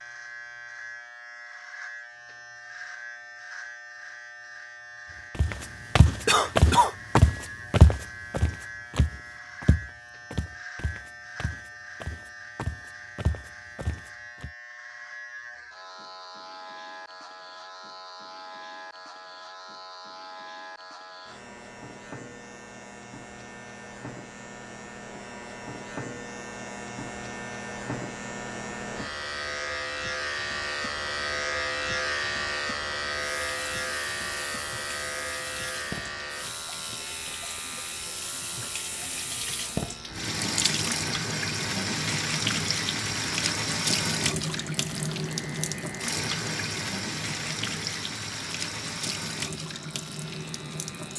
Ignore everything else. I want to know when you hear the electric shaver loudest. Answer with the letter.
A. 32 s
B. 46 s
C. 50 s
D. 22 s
A.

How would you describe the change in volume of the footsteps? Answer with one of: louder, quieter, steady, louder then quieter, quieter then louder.
quieter then louder.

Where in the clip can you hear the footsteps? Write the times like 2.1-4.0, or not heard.
5.3-14.5.